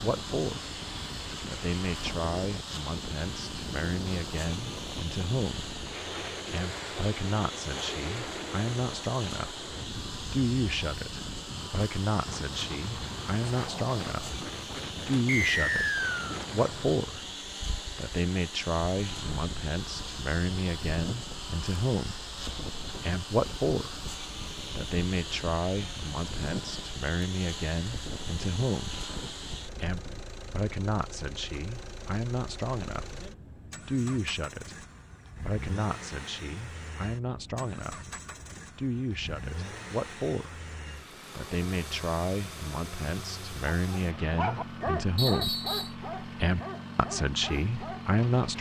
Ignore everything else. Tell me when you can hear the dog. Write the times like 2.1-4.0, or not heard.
43.8-48.5.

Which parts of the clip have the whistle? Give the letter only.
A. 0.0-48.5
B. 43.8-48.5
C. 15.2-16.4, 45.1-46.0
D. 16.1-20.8
C.